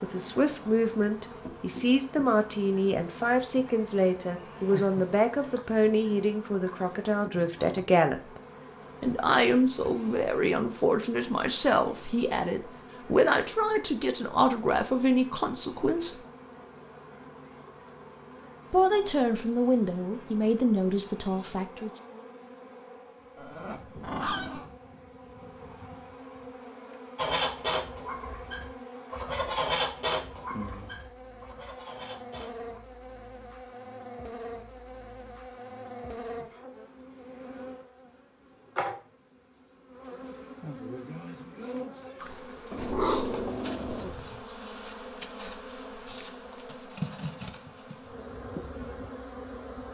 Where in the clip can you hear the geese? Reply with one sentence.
You can hear the geese from 27.1 to 32.8 s.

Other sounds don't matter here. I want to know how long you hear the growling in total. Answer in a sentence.
The growling can be heard for 5 seconds in total.